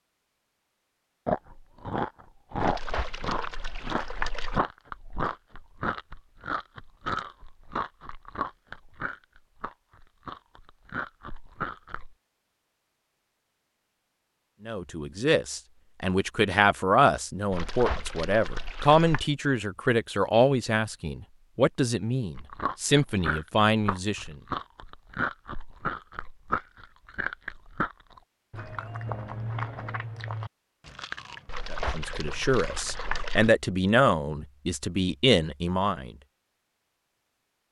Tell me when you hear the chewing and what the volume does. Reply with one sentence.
The chewing can be heard from 1.2 to 12.2 s, getting quieter; and from 22.4 to 33.2 s, getting quieter.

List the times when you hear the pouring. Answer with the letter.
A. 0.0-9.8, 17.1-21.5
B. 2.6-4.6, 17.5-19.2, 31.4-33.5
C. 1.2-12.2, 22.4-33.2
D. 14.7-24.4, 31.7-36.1
B.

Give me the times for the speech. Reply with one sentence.
The speech can be heard from 14.7 to 24.4 s and from 31.7 to 36.1 s.